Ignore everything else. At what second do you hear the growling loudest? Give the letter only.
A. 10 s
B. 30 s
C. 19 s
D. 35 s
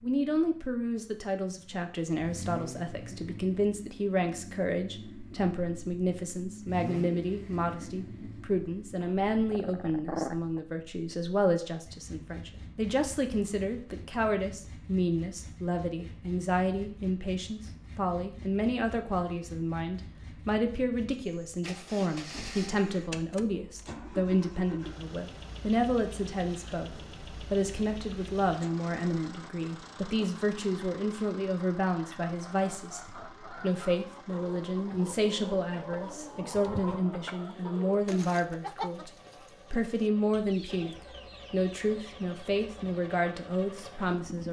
A.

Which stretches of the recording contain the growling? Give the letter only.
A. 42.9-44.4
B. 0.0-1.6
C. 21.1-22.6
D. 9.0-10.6
D.